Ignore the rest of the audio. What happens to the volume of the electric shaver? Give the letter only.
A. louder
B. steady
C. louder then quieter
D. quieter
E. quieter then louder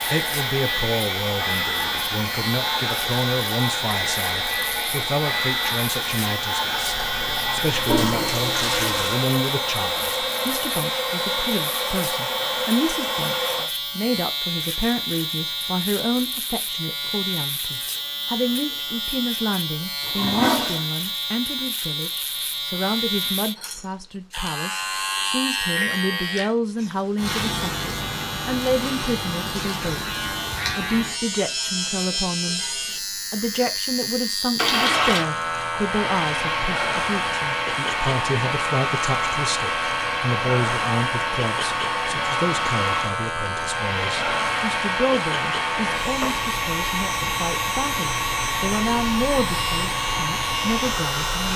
B.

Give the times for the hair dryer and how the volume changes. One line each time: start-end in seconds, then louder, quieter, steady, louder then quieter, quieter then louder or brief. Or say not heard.
0.0-13.7 steady
34.6-51.5 steady.